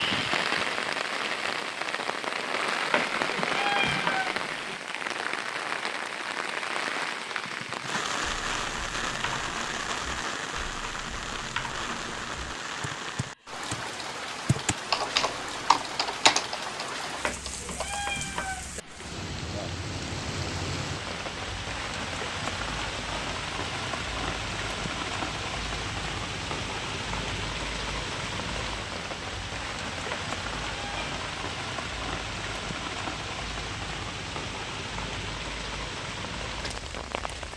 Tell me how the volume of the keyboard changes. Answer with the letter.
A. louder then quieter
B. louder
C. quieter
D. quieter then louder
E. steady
B.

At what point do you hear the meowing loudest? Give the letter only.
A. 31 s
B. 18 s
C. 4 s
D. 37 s
C.